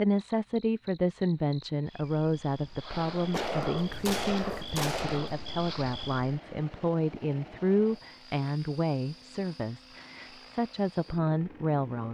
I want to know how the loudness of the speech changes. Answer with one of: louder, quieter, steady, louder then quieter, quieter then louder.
steady.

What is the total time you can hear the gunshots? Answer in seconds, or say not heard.
2 s.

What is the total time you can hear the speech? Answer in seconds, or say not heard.
12 s.